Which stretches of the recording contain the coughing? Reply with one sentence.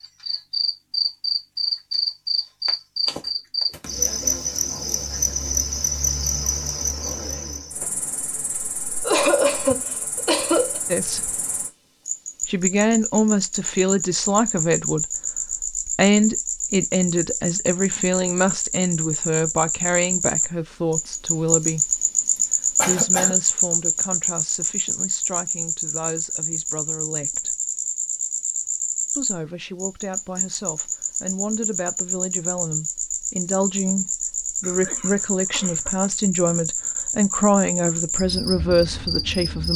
You can hear the coughing from 9.0 to 10.8 s, from 22.8 to 23.4 s and from 34.6 to 36.1 s.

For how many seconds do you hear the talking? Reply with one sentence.
You can hear the talking for 25 seconds altogether.